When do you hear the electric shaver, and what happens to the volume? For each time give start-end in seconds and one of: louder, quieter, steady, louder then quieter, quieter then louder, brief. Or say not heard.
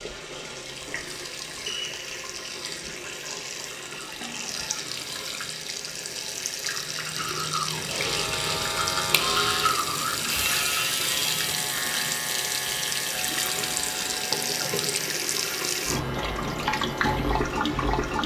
8.0-18.2 quieter.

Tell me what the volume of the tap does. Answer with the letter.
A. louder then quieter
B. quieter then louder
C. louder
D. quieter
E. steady
C.